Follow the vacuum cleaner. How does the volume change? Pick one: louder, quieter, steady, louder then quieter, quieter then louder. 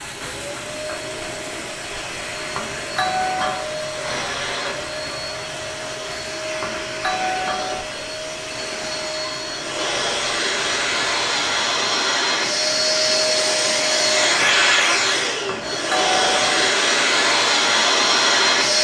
louder.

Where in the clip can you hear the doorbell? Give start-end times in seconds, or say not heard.
2.5-3.6, 6.6-7.8, 15.4-16.7.